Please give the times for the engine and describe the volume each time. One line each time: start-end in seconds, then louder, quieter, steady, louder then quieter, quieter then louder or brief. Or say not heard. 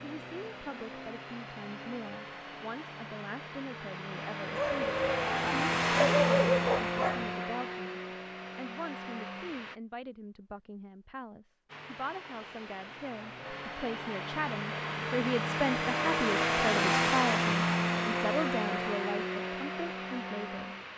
0.0-9.8 louder then quieter
11.7-20.9 louder then quieter.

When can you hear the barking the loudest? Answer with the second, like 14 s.
6 s.